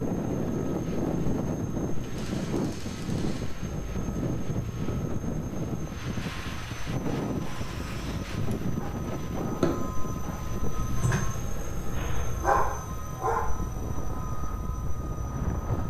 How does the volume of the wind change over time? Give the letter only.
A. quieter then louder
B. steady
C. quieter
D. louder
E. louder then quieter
C.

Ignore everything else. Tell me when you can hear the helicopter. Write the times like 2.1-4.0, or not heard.
0.0-15.8.